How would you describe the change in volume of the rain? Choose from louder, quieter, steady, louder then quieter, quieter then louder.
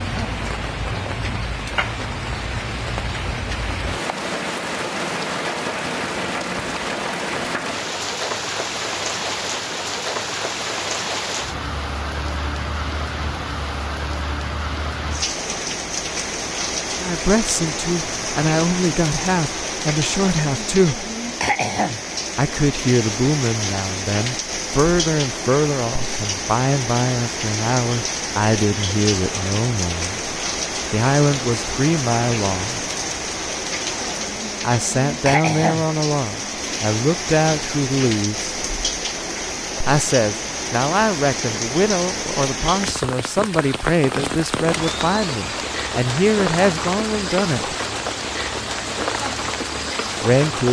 steady.